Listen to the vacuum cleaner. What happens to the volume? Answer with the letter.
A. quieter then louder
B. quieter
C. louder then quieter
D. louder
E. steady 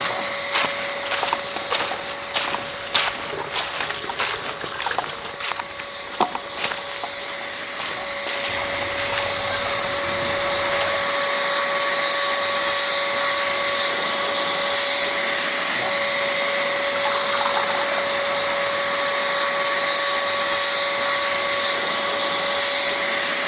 D.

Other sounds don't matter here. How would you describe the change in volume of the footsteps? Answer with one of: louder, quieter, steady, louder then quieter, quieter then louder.
quieter.